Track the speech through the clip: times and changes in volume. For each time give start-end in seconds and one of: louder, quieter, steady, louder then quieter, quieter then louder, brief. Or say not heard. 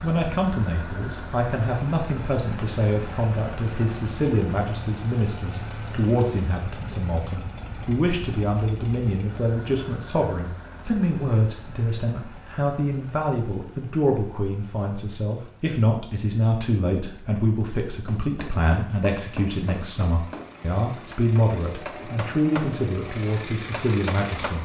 0.0-24.5 steady.